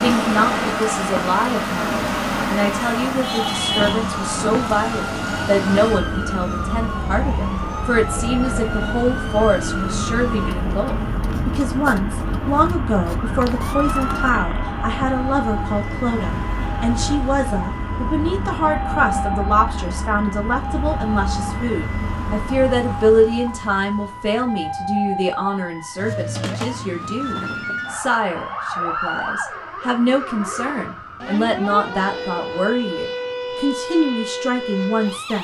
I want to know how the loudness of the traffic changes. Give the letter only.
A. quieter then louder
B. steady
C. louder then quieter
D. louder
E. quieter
E.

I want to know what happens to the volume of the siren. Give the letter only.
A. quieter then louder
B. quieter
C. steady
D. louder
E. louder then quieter
C.